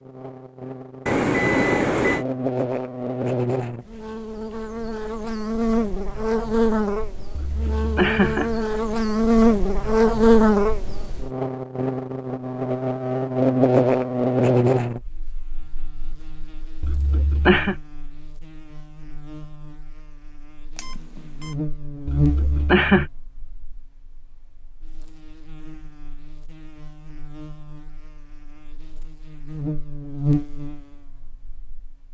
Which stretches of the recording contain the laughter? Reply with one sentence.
You can hear the laughter from 7.3 to 8.6 s, from 16.8 to 17.8 s and from 22.1 to 23.1 s.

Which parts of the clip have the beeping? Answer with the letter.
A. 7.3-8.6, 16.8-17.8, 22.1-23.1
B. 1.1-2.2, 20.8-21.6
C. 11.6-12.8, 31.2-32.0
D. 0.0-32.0
B.